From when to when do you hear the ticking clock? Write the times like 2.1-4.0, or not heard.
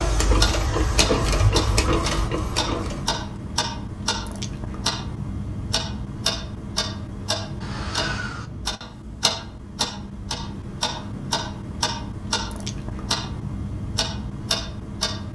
0.0-15.3.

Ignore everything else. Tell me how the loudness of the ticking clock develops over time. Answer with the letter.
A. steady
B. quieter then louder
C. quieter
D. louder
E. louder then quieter
A.